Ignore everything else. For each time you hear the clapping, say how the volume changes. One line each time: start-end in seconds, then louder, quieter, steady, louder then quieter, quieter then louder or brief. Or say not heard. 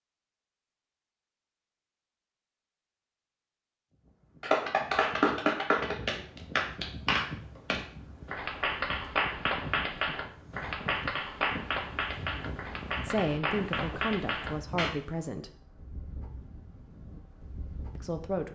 4.4-14.9 quieter.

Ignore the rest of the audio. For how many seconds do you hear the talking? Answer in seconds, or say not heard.
3 s.